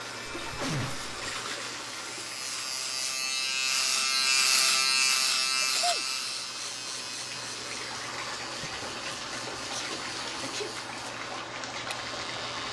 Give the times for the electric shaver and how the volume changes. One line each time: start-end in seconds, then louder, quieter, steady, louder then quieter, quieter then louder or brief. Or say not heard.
0.0-12.6 louder then quieter.